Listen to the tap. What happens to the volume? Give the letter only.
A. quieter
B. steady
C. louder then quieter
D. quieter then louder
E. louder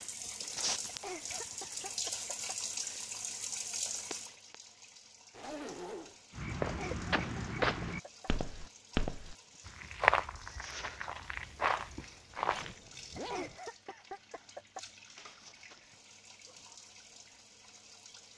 A.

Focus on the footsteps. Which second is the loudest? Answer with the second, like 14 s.
10 s.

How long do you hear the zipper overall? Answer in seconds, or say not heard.
2 s.